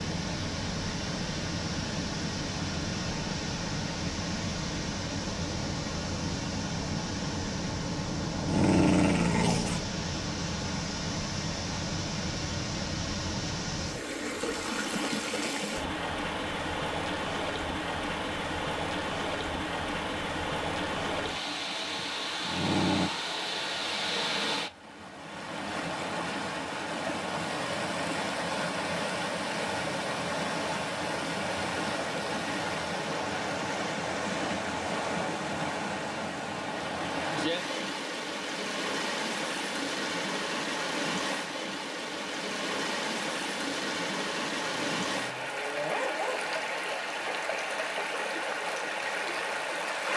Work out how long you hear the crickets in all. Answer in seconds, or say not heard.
not heard.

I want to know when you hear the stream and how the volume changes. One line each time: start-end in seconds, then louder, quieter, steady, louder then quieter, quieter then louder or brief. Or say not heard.
0.0-50.1 steady.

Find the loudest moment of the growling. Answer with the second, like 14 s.
9 s.